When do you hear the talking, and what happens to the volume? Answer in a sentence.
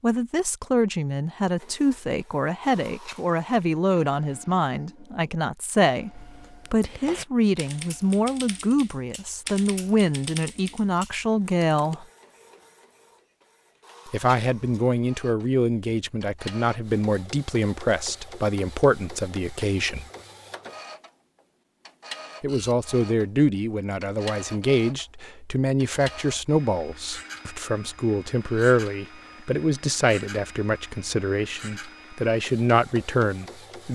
You can hear the talking from 0.0 to 12.1 s, at a steady volume; from 14.1 to 20.1 s, at a steady volume; and from 22.4 to 33.9 s, at a steady volume.